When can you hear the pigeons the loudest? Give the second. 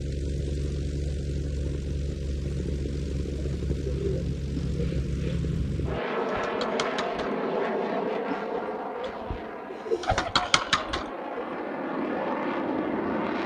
10 s.